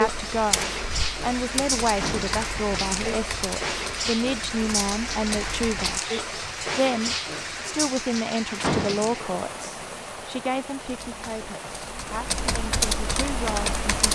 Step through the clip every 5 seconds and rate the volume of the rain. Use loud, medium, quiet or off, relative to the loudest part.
loud, loud, medium.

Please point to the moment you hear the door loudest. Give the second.
9 s.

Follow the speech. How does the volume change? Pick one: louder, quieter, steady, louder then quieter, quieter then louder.
quieter.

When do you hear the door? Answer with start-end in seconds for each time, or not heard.
1.9-2.4, 8.6-9.2.